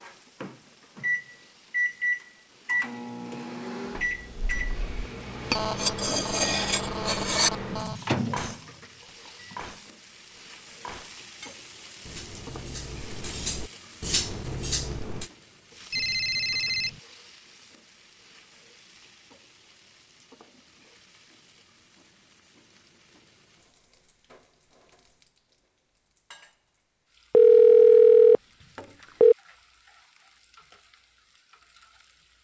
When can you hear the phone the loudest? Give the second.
28 s.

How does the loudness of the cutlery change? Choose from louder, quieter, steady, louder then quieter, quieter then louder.
quieter then louder.